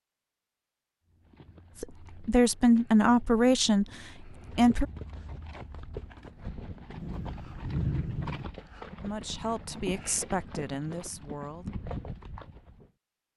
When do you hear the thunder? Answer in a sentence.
The thunder can be heard from 7.0 to 8.4 s.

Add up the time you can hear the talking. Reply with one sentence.
The talking can be heard for 6 seconds in total.